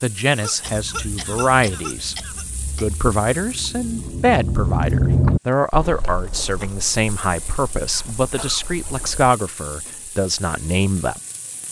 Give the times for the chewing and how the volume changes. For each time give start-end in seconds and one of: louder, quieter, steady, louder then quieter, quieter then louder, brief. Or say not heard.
0.7-9.3 louder then quieter.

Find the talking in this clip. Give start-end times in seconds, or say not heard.
0.0-2.1, 2.8-11.2.